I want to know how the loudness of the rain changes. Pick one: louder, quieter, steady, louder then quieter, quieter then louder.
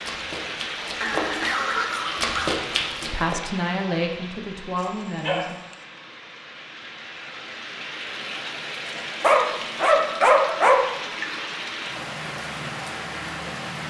quieter then louder.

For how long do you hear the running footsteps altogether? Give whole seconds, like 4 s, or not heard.
3 s.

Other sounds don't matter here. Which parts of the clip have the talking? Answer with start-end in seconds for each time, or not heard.
3.0-5.6.